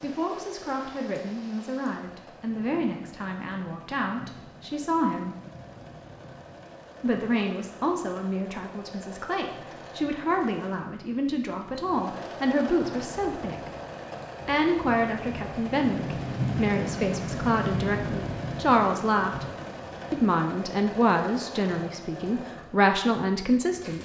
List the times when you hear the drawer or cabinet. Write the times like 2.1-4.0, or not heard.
not heard.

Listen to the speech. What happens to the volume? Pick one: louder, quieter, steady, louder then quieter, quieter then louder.
louder.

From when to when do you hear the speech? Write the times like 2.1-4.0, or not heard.
0.0-5.3, 7.0-13.7, 14.4-19.4, 20.1-23.9.